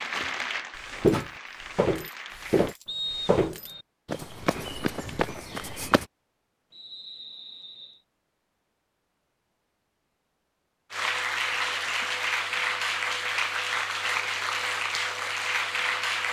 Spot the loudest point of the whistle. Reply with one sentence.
The volume of the whistle peaks at 3 seconds.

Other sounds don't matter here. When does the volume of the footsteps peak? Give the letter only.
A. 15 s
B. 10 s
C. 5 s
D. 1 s
D.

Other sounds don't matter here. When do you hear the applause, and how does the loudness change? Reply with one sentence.
The applause can be heard briefly from 0.0 to 2.8 s; and from 10.9 to 16.2 s, at a steady volume.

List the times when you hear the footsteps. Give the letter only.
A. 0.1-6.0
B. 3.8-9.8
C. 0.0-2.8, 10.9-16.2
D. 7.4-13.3
A.